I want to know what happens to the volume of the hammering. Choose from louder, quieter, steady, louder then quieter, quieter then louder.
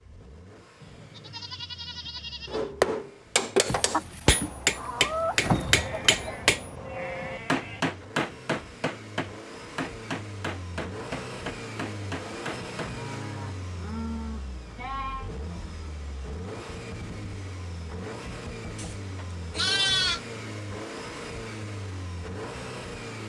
quieter.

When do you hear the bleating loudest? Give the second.
20 s.